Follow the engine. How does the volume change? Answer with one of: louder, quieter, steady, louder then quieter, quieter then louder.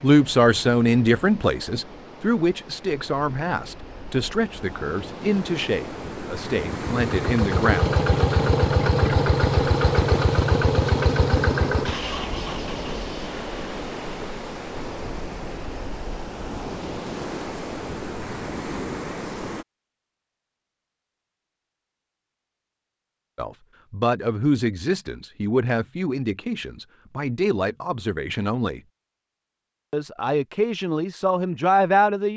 quieter.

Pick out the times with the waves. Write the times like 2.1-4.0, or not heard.
0.0-19.6.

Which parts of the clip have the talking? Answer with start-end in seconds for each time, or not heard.
0.0-7.8, 23.4-28.8, 29.9-32.3.